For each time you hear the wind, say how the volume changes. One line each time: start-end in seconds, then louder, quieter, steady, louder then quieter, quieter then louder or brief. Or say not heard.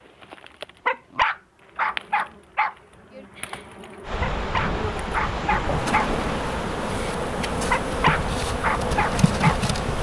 4.0-9.9 steady.